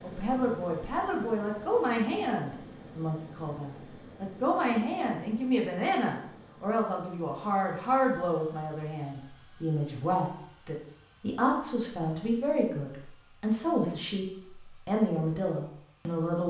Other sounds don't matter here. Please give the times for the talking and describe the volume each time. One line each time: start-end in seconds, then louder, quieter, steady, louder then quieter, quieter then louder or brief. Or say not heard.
0.0-16.4 steady.